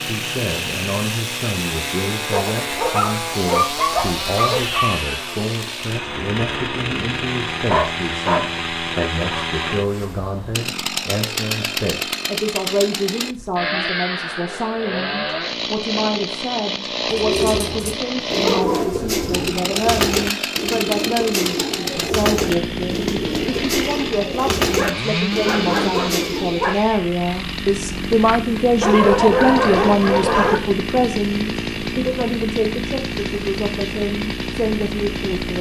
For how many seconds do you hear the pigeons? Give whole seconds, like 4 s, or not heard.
10 s.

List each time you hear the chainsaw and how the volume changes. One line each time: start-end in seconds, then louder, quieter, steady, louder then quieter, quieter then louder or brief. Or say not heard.
0.0-35.5 steady.